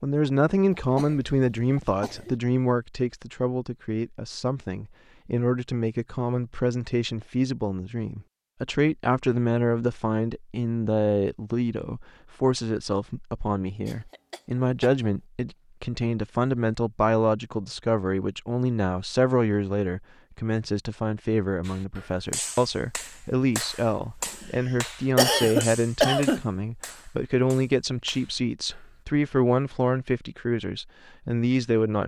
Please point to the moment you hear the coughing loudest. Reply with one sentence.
The volume of the coughing peaks at 26 seconds.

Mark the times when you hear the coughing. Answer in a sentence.
The coughing can be heard from 0.8 to 2.4 s, from 13.8 to 14.9 s and from 24.4 to 26.4 s.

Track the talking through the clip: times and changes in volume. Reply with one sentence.
The talking can be heard from 0.0 to 32.0 s, at a steady volume.